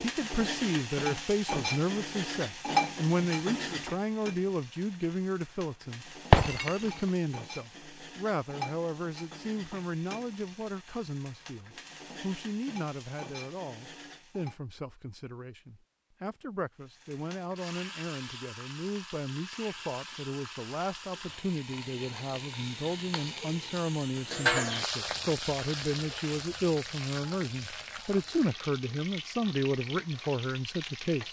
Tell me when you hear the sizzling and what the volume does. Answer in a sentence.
You can hear the sizzling from 0.0 to 14.6 s, getting quieter; and from 16.8 to 31.2 s, getting louder then quieter.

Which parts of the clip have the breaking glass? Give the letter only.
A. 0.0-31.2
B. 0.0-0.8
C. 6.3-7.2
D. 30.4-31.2
C.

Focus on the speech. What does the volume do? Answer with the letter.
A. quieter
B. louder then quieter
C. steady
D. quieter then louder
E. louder
D.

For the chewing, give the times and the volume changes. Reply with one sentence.
The chewing can't be heard in this clip.